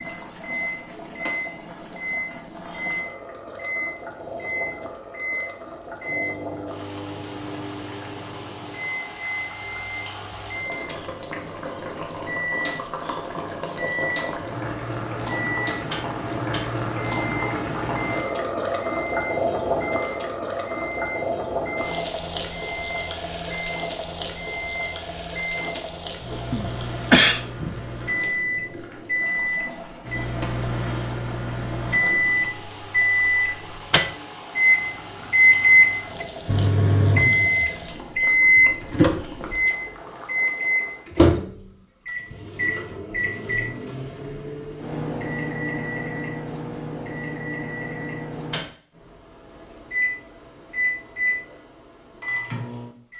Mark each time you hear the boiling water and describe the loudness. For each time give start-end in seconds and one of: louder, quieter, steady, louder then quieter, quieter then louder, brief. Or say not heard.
0.0-41.0 louder then quieter.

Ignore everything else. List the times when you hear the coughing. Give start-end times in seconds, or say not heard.
26.5-27.4.